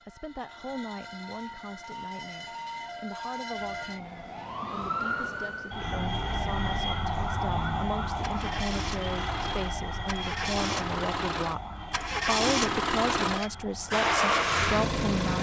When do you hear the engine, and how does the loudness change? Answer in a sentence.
You can hear the engine from 5.8 to 15.3 s, getting louder.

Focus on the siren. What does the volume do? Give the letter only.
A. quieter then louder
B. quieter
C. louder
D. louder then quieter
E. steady
D.